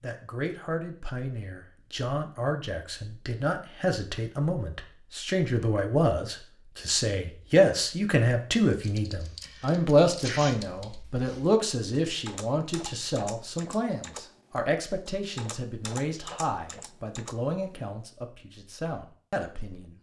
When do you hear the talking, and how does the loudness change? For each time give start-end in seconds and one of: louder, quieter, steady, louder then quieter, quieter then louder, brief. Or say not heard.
0.0-19.9 louder then quieter.